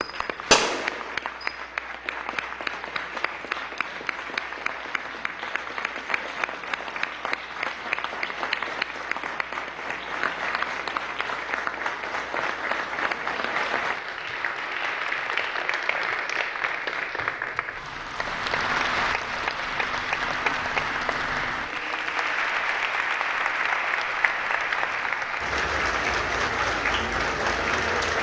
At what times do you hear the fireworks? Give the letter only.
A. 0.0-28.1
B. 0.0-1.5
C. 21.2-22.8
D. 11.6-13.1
B.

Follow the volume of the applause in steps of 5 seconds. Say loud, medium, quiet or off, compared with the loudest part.
medium, medium, loud, loud, loud, loud.